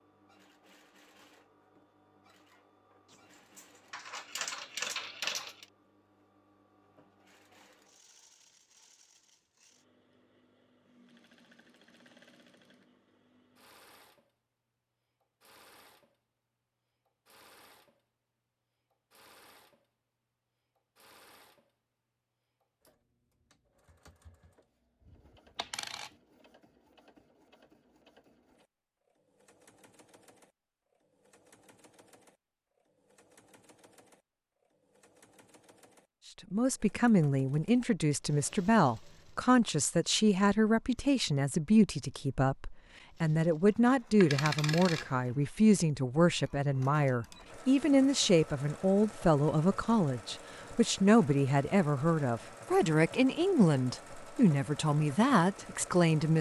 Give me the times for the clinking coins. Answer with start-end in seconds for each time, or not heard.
3.1-5.7, 25.6-26.1, 44.2-45.3.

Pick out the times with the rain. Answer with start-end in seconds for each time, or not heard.
not heard.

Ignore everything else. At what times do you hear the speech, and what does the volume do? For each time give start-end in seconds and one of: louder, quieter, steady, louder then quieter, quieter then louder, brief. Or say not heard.
36.5-56.3 steady.